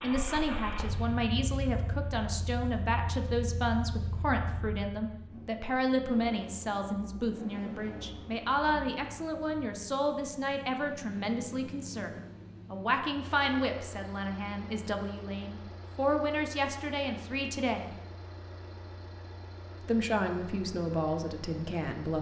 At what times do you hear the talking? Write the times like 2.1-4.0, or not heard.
0.0-12.1, 12.7-17.9, 19.9-22.1.